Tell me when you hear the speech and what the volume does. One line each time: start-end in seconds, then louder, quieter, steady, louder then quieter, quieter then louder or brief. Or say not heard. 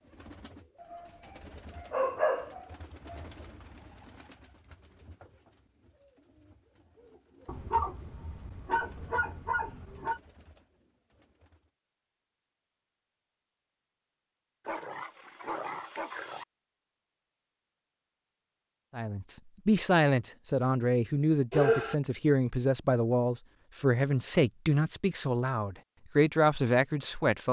18.9-27.4 steady.